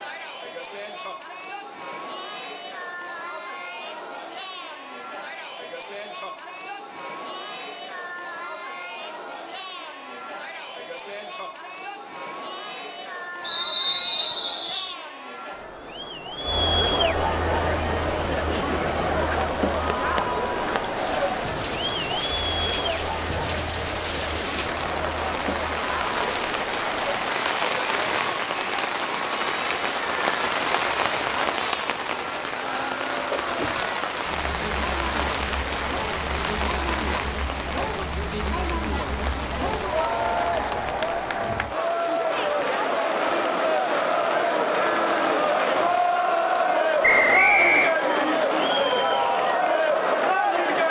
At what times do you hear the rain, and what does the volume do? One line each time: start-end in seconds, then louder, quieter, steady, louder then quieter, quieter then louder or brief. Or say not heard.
17.4-50.8 louder then quieter.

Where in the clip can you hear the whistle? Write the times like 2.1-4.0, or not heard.
13.4-14.9, 47.0-48.0.